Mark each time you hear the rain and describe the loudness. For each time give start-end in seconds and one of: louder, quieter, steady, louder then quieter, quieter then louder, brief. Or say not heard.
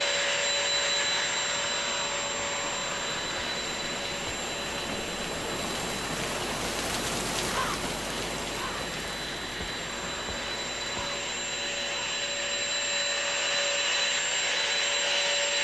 0.0-15.5 louder then quieter.